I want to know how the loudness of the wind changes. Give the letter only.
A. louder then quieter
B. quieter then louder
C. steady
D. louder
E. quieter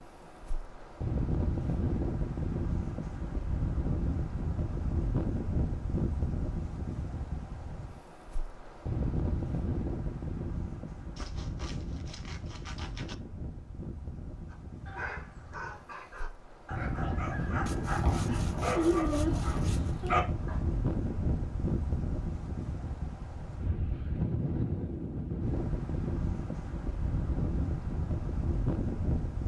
B.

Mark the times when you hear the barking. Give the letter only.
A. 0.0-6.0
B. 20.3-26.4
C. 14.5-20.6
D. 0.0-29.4
C.